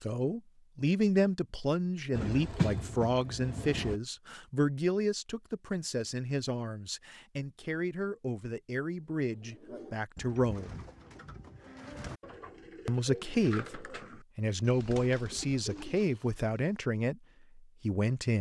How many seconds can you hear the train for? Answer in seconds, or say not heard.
2 s.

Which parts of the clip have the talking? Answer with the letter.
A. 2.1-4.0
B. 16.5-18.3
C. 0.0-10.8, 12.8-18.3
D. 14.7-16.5
C.